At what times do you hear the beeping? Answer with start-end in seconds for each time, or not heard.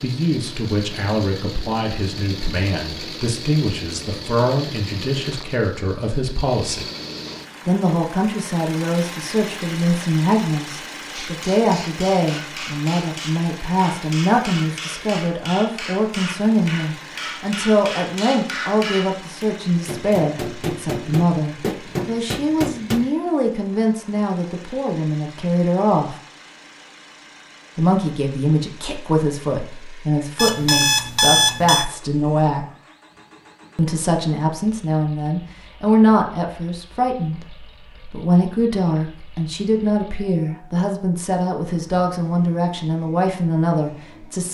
30.4-31.9.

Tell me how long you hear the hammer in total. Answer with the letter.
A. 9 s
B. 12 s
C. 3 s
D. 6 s
B.